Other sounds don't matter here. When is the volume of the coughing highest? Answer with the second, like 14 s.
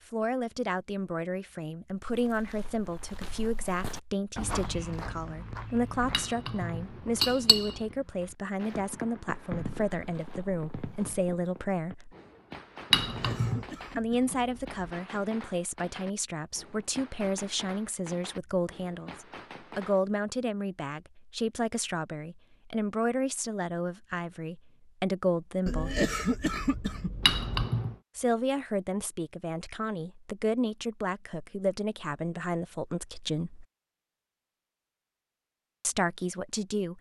26 s.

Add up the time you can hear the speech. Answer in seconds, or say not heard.
31 s.